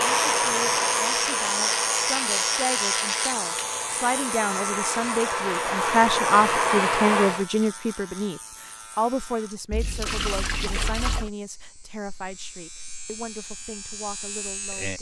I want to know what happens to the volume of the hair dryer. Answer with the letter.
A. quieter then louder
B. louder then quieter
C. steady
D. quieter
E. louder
A.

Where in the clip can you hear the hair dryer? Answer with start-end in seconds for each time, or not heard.
0.0-7.5.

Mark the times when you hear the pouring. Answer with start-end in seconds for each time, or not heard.
9.7-11.3.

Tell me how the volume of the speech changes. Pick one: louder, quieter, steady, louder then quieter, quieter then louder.
louder then quieter.